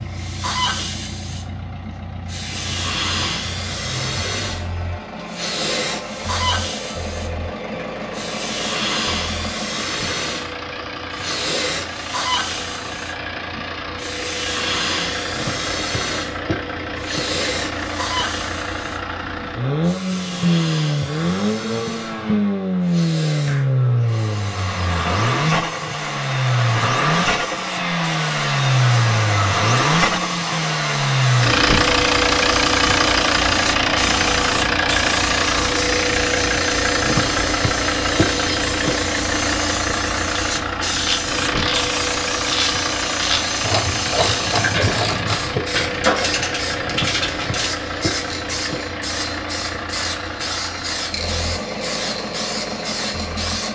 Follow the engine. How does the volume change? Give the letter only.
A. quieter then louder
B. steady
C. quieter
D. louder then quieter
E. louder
D.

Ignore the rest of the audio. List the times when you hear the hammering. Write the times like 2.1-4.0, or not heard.
not heard.